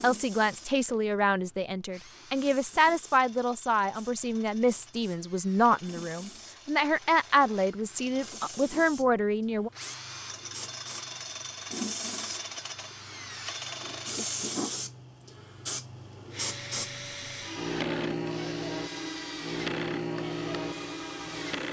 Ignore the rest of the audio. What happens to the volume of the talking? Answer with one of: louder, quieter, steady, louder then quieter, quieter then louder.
steady.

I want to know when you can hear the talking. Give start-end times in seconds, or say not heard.
0.0-9.7.